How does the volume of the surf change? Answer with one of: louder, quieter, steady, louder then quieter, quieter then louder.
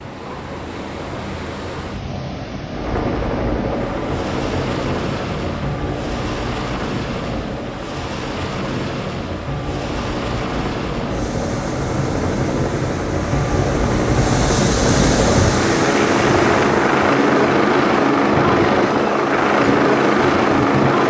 louder then quieter.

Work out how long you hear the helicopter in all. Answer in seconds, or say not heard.
18 s.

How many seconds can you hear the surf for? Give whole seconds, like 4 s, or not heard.
21 s.